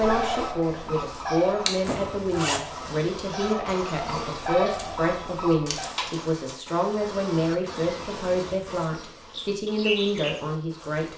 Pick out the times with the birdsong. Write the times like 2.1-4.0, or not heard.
0.0-6.0.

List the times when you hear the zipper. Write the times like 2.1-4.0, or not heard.
1.8-2.6, 8.1-9.1.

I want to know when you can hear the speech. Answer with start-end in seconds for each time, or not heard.
0.0-11.1.